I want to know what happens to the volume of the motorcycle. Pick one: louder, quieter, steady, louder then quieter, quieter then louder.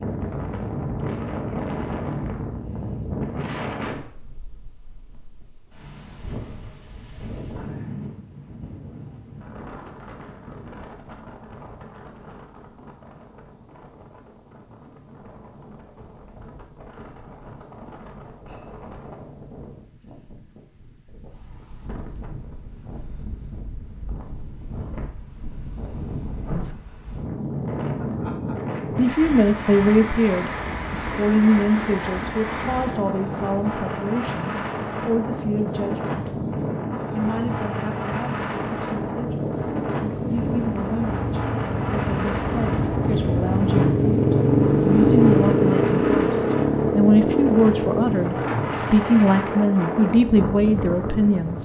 louder then quieter.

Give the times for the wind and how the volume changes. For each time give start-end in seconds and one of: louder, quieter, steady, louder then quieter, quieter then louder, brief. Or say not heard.
0.0-51.6 quieter then louder.